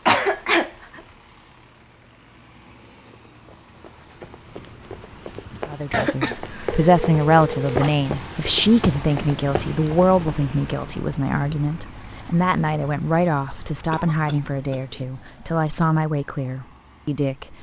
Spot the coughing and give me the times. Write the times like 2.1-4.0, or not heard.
0.1-1.0, 5.9-6.8, 13.6-14.8.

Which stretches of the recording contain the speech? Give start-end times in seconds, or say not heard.
5.7-17.5.